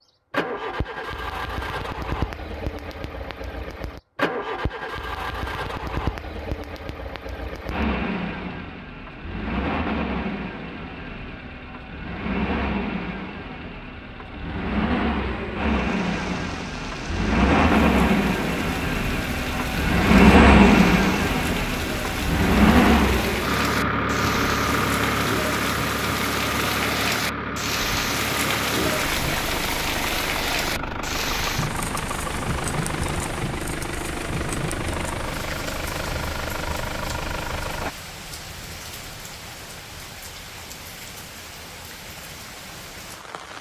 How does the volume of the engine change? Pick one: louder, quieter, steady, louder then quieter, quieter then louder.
louder then quieter.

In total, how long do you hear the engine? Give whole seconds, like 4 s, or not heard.
38 s.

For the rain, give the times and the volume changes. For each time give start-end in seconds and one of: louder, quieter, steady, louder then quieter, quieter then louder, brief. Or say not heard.
15.6-43.5 louder then quieter.